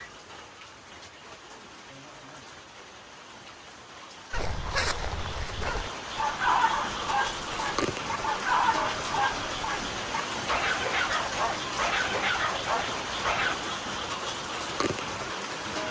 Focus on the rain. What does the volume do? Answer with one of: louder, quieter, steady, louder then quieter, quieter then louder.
louder.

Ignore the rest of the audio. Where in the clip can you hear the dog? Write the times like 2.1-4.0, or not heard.
4.3-13.6.